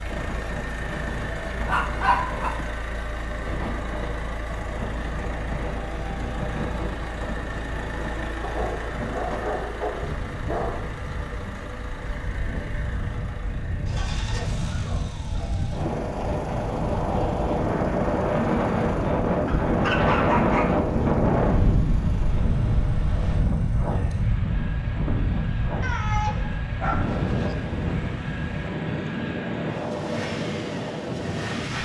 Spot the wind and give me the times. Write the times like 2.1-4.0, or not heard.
0.0-31.8.